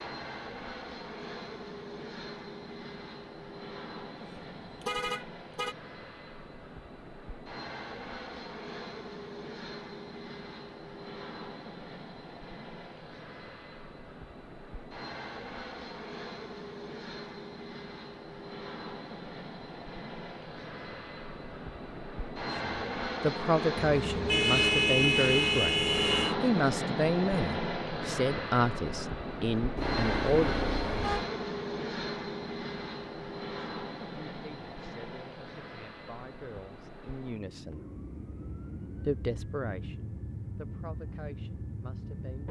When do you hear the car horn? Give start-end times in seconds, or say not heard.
4.2-5.8, 23.9-26.4, 29.8-31.3.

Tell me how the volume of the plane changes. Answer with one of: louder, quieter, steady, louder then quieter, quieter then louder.
louder then quieter.